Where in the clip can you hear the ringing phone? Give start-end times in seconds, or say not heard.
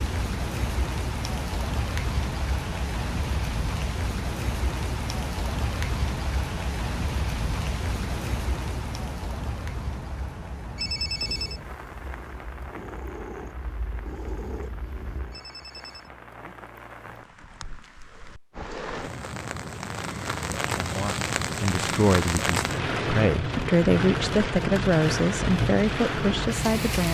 10.8-11.6, 15.3-16.1.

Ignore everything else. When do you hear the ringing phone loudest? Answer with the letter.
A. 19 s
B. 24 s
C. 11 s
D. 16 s
C.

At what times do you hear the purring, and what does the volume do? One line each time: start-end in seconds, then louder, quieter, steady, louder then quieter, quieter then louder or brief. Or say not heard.
11.2-15.4 louder.